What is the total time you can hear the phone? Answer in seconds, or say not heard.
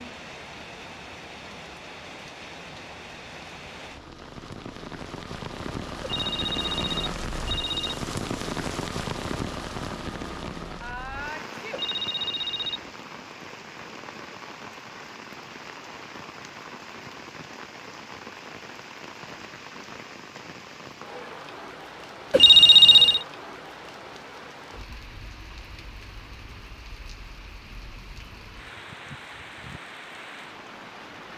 4 s.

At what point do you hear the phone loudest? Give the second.
23 s.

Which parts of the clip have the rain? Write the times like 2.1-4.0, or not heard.
0.0-31.3.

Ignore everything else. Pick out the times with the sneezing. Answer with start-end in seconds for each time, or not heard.
10.8-12.4.